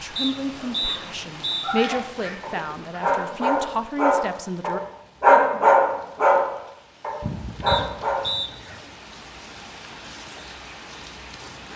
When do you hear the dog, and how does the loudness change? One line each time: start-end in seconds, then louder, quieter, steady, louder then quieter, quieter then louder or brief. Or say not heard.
0.6-8.2 louder then quieter.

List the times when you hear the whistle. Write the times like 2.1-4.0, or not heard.
0.1-1.8, 7.7-8.5.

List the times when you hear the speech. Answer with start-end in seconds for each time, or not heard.
0.0-4.8.